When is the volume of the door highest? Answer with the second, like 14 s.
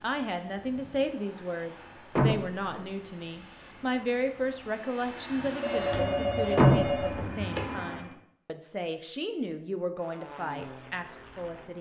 7 s.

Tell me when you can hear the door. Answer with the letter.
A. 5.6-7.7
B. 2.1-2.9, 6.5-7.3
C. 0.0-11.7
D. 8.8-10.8
B.